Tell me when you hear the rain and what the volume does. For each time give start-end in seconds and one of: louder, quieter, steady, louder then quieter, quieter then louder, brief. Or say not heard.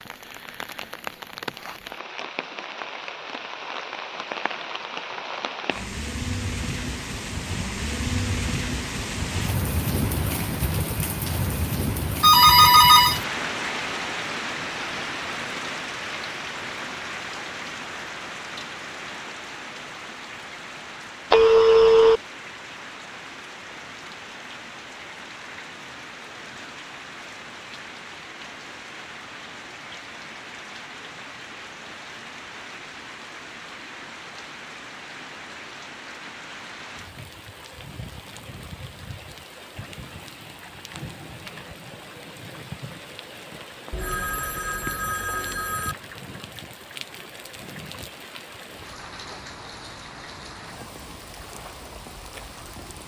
0.0-53.0 quieter.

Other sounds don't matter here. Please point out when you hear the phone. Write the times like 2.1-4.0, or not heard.
12.2-13.2, 21.3-22.2, 43.9-46.0.